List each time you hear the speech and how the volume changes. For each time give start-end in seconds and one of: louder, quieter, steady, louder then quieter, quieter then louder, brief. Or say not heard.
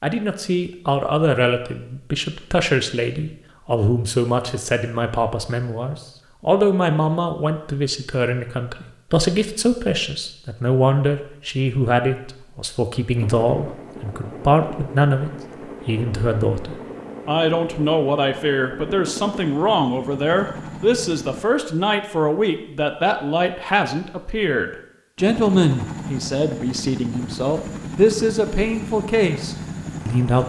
0.0-30.4 steady.